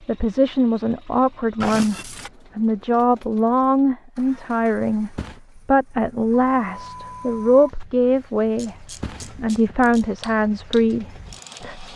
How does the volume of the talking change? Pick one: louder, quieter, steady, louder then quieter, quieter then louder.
steady.